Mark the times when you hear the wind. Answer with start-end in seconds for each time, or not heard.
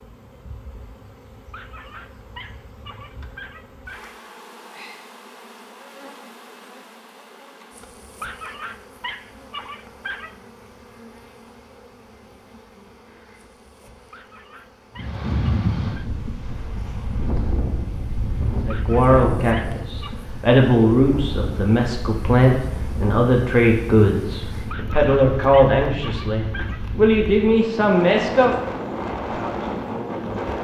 14.9-30.5.